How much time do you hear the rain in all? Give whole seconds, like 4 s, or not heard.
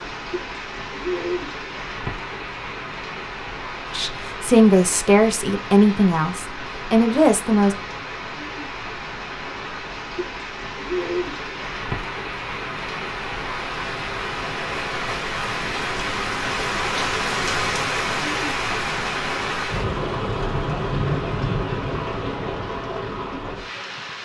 24 s.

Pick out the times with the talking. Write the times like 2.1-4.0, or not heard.
3.9-7.8.